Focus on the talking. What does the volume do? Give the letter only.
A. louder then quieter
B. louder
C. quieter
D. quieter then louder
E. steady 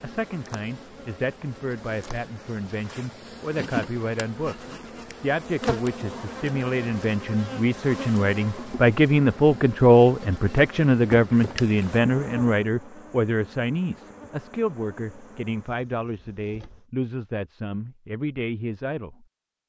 A.